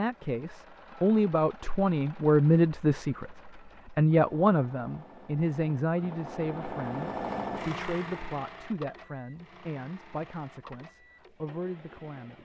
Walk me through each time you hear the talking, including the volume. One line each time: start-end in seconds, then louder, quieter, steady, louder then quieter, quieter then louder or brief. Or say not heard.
0.0-12.4 quieter.